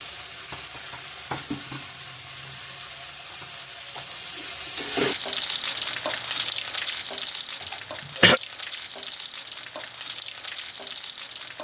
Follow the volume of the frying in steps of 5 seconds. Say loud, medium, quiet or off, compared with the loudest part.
medium, loud, medium.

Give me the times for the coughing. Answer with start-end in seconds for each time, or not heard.
7.6-8.4.